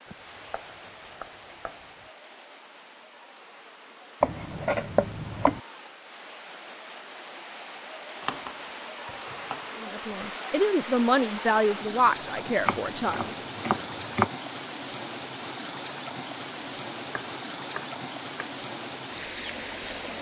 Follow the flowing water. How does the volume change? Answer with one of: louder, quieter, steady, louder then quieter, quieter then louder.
louder.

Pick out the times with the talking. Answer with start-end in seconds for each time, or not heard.
9.8-13.3.